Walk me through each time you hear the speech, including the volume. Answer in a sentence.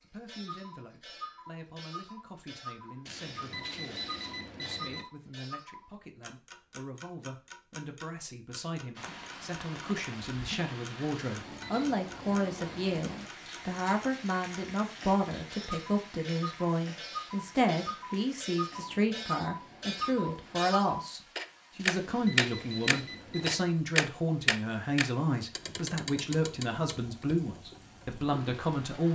The speech can be heard from 0.0 to 29.1 s, getting louder.